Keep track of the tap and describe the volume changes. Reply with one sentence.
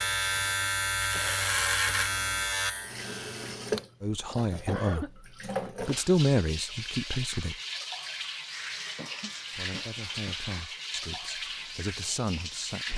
The loudness of the tap goes up.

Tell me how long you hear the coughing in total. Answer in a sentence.
You can hear the coughing for 3 seconds altogether.